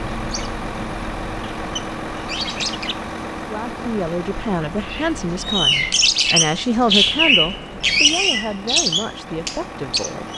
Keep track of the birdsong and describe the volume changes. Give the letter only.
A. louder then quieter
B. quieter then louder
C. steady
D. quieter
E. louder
A.